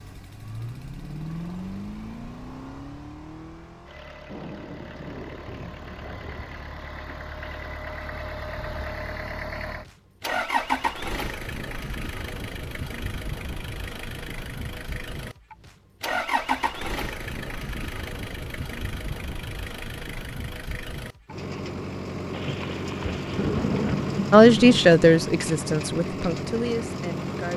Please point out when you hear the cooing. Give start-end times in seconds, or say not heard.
not heard.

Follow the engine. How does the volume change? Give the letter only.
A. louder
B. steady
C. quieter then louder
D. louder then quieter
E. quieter
A.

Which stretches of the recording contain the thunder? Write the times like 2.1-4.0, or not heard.
4.2-7.8, 22.3-24.9.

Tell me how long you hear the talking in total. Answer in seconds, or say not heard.
3 s.